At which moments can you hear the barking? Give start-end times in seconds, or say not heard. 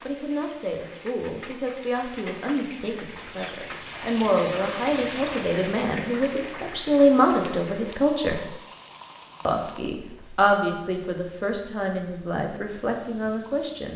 not heard.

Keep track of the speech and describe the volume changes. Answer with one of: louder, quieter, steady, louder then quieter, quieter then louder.
louder then quieter.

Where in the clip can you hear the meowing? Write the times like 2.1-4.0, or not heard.
not heard.